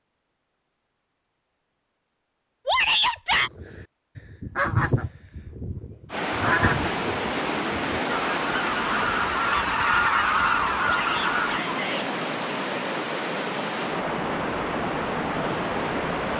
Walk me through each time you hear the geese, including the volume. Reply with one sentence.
The geese can be heard from 3.4 to 11.6 s, getting quieter then louder.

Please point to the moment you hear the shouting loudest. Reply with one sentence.
The loudest moment of the shouting is at 3 seconds.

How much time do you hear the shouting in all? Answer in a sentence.
You can hear the shouting for 2 seconds altogether.